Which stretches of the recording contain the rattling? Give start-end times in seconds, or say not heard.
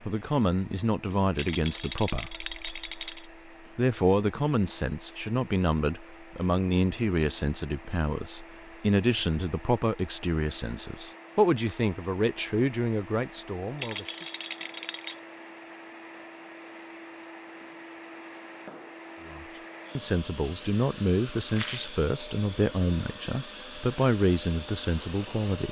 1.4-3.3, 13.8-15.2, 21.4-21.9.